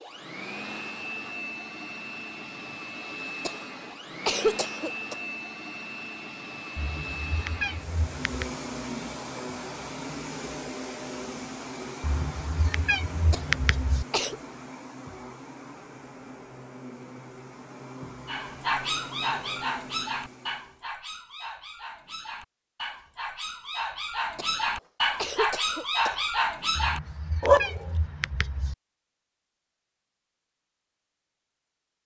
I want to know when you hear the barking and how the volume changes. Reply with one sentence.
The barking can be heard from 18.2 to 27.9 s, getting quieter then louder.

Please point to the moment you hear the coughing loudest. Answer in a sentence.
The volume of the coughing peaks at 4 seconds.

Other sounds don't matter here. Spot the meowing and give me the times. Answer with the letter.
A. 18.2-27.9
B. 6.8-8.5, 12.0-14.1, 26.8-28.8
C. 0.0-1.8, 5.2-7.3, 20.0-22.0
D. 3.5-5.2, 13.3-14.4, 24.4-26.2
B.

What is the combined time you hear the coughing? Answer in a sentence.
You can hear the coughing for 5 seconds altogether.